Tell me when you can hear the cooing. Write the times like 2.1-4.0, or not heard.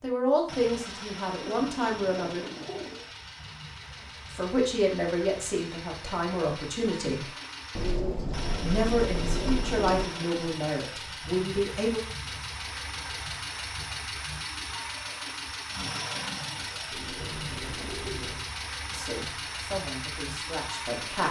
1.4-3.1, 7.8-10.1, 16.9-18.4.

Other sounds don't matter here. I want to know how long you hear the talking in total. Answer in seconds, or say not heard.
11 s.